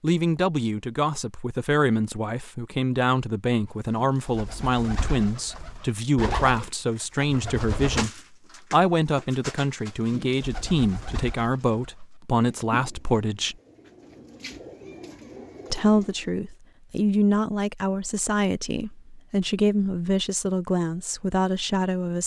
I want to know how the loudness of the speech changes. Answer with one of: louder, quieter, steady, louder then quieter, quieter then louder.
steady.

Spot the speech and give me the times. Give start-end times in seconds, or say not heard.
0.0-13.6, 15.7-22.2.